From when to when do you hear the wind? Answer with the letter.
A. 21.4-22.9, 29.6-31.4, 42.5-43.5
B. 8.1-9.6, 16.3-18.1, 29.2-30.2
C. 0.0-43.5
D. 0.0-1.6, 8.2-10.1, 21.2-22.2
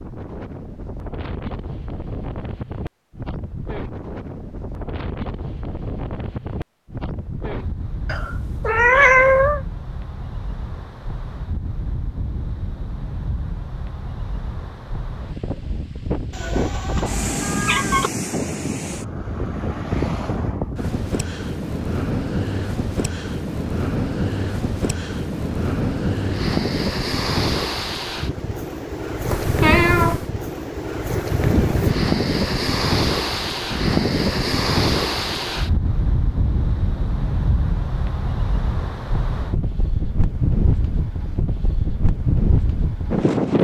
C.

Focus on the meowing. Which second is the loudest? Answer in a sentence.
The loudest moment of the meowing is at 9 seconds.